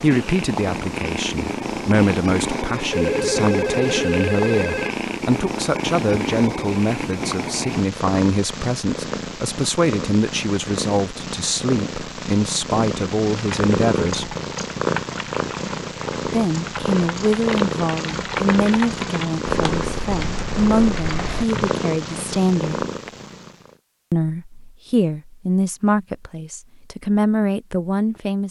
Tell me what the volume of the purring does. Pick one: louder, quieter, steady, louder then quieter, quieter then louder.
steady.